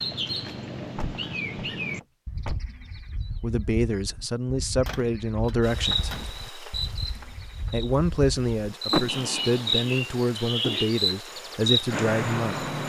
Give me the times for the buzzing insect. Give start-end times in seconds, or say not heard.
5.6-12.8.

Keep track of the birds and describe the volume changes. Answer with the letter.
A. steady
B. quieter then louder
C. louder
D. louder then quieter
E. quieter
B.